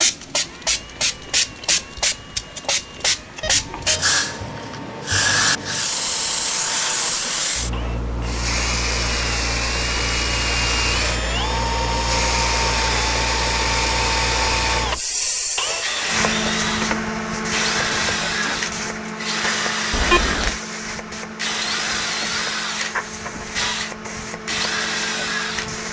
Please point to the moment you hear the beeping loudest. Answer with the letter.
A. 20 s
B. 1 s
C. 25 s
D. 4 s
A.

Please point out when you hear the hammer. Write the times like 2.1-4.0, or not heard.
not heard.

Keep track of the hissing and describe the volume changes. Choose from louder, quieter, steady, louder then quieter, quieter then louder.
quieter.